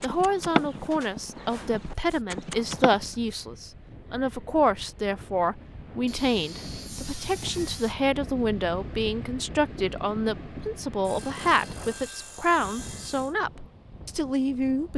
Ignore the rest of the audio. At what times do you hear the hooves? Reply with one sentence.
The hooves can be heard from 0.0 to 3.1 s.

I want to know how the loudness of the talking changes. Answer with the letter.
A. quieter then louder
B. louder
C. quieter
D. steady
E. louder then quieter
D.